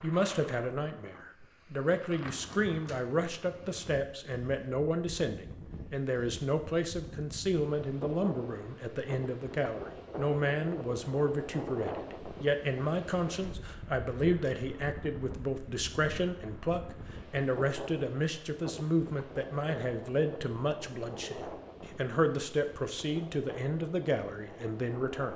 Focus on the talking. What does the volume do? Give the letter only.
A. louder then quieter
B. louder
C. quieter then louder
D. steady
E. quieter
D.